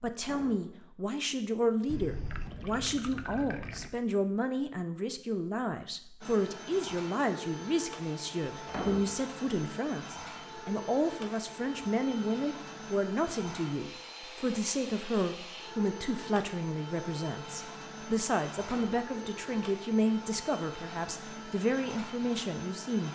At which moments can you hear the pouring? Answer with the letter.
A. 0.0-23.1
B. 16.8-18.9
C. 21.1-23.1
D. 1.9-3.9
D.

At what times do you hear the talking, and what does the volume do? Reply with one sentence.
The talking can be heard from 0.0 to 23.1 s, at a steady volume.